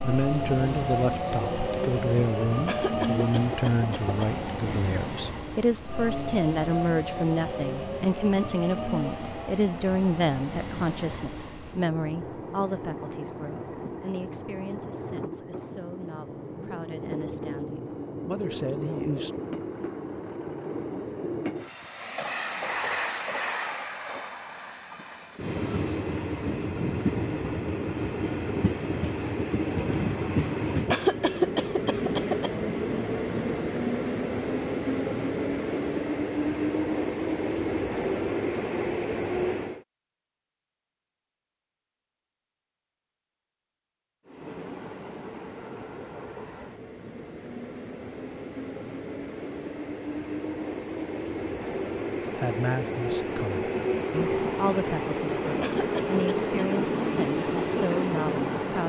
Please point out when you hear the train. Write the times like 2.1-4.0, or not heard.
0.0-39.9, 44.2-58.8.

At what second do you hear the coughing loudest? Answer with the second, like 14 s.
31 s.